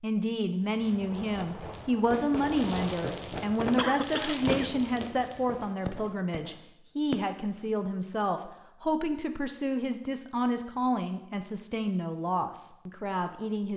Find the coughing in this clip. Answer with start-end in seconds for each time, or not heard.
3.8-4.7.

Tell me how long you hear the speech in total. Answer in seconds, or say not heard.
14 s.